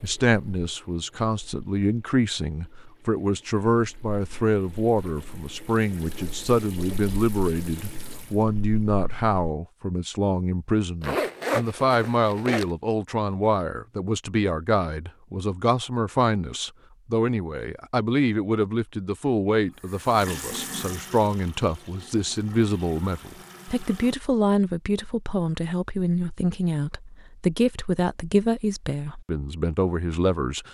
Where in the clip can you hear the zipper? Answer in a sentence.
The zipper can be heard from 11.0 to 12.7 s.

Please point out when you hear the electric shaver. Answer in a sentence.
The electric shaver can't be heard in this clip.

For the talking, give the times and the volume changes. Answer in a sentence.
You can hear the talking from 0.0 to 30.6 s, at a steady volume.